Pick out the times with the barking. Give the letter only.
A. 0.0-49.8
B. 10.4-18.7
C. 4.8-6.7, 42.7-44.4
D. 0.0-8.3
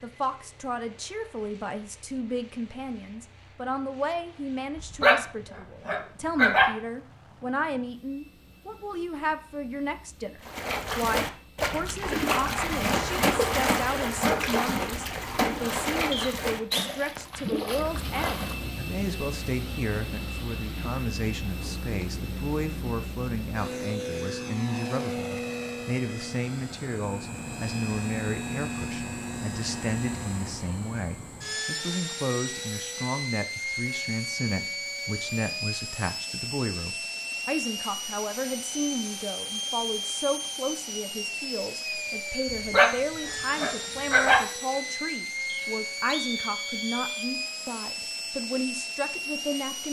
C.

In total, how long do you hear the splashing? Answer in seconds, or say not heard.
8 s.